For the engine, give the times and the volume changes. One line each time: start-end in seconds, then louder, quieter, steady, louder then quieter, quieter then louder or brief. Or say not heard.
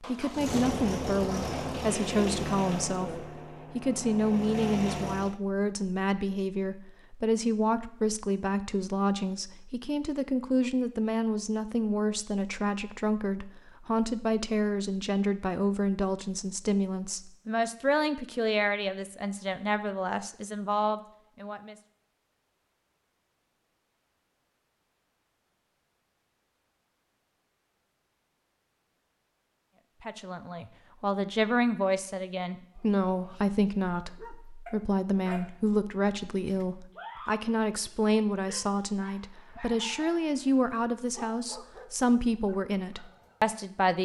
0.0-5.4 quieter then louder.